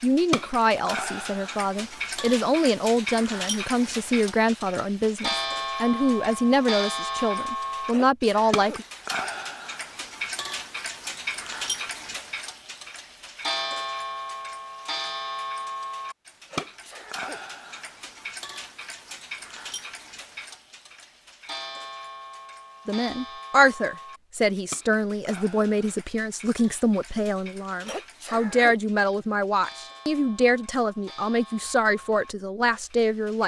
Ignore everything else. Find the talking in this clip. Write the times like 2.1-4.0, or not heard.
0.0-8.8, 22.9-33.4.